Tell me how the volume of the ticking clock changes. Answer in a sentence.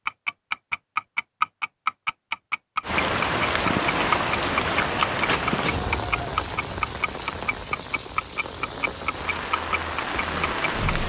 The loudness of the ticking clock goes down.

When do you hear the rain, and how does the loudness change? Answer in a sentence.
The rain can be heard from 2.8 to 11.0 s, getting quieter then louder.